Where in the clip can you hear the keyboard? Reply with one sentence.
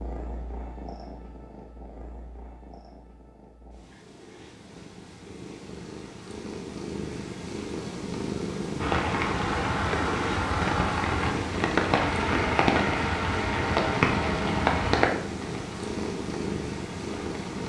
The keyboard can't be heard in this clip.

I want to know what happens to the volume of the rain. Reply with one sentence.
The volume of the rain goes down.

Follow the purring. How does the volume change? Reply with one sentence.
The loudness of the purring goes up.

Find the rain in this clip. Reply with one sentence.
The rain can be heard from 8.8 to 17.6 s.